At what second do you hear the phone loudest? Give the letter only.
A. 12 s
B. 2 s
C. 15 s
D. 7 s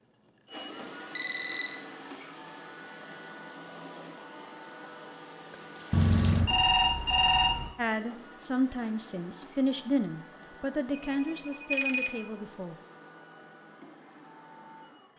D.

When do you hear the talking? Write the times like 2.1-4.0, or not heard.
7.8-12.8.